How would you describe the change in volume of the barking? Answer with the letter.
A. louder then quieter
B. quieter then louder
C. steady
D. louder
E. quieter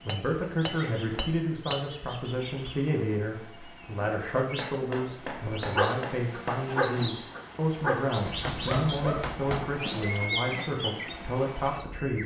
E.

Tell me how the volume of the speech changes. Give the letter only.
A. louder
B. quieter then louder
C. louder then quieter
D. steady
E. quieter
D.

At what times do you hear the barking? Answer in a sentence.
The barking can be heard from 5.3 to 10.7 s.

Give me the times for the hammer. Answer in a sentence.
The hammer can be heard from 0.1 to 1.9 s, from 4.5 to 6.6 s and from 8.2 to 9.8 s.